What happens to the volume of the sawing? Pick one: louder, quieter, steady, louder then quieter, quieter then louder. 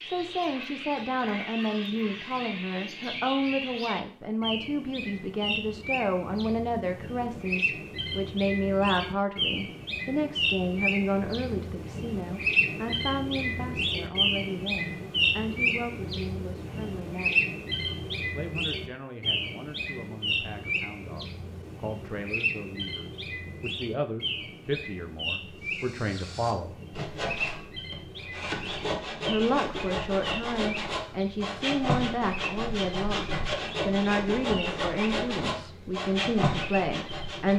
louder.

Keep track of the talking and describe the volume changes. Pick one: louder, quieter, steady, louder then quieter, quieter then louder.
quieter then louder.